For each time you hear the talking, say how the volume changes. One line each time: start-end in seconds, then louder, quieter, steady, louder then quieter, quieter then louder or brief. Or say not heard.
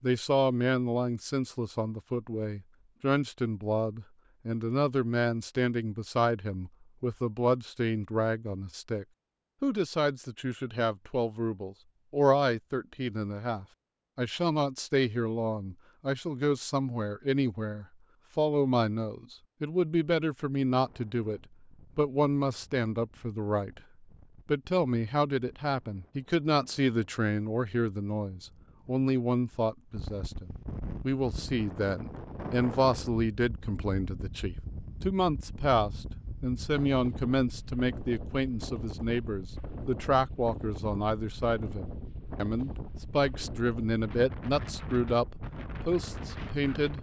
0.0-23.8 steady
24.4-46.9 steady.